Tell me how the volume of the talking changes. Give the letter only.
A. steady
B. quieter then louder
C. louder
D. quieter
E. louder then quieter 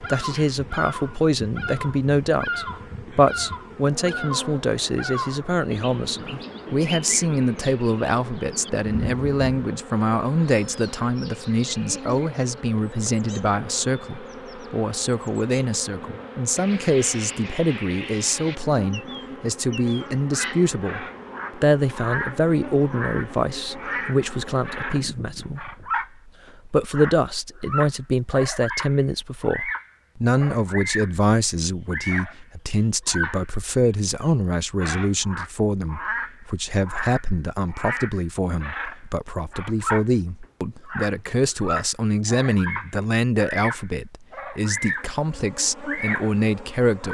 A.